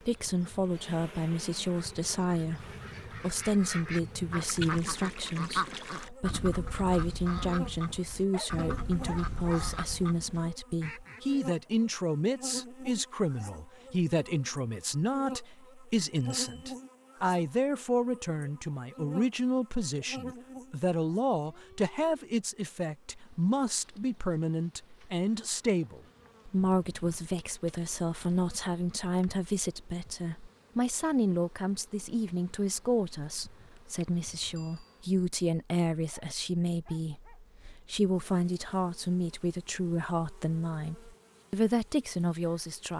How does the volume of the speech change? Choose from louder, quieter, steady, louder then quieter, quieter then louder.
steady.